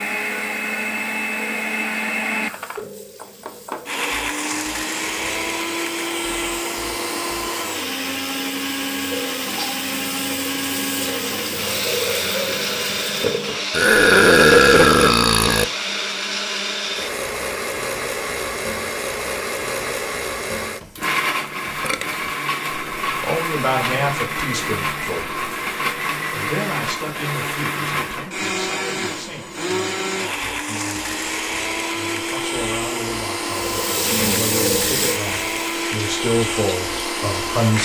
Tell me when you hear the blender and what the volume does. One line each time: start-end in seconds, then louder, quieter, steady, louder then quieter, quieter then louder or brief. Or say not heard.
0.0-37.7 steady.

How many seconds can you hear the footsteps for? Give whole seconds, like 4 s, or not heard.
not heard.